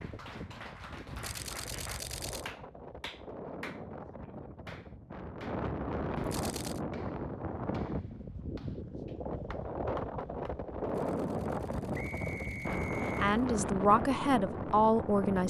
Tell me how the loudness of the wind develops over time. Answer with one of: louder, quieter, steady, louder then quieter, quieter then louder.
louder.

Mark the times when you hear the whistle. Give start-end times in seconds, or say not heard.
11.9-13.2.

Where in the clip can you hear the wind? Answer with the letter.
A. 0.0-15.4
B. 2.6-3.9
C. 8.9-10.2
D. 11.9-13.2
A.